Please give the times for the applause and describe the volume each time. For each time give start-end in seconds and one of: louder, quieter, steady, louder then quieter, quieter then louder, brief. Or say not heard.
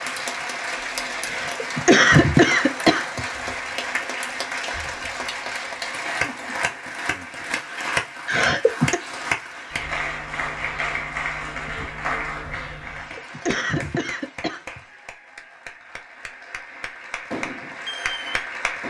0.0-18.8 quieter.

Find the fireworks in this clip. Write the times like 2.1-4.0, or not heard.
17.3-18.8.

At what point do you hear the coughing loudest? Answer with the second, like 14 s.
2 s.